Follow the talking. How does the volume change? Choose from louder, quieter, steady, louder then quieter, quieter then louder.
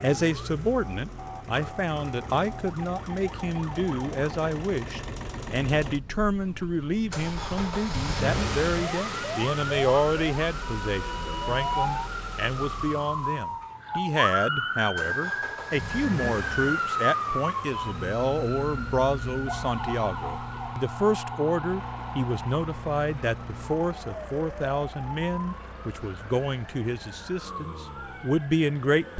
steady.